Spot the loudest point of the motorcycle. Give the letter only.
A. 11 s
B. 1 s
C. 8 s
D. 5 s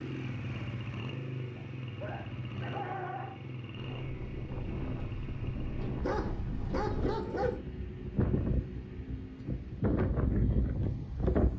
B.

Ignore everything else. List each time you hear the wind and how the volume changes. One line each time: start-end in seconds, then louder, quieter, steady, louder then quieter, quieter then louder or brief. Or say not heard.
3.9-11.5 louder.